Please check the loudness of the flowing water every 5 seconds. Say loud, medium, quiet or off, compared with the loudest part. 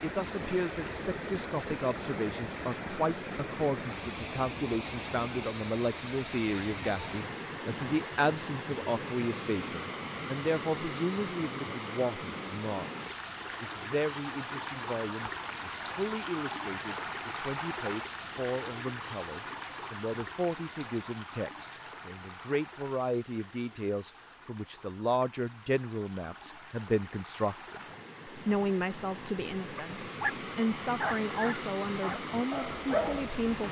loud, loud, loud, loud, medium, medium, loud.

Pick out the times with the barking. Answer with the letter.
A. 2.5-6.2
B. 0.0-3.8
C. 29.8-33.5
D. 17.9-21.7
C.